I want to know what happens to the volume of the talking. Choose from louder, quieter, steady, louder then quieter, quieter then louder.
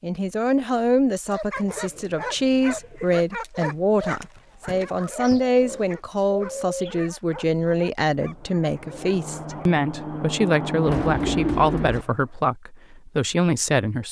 steady.